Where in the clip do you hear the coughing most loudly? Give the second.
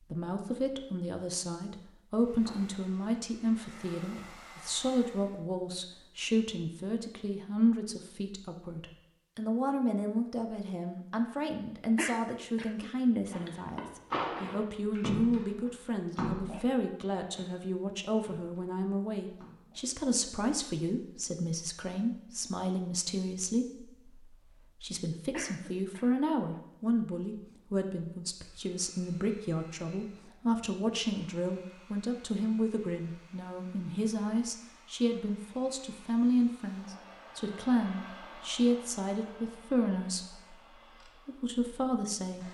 12 s.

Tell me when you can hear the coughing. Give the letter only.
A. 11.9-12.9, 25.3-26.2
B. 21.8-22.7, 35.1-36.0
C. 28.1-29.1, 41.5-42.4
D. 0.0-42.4
A.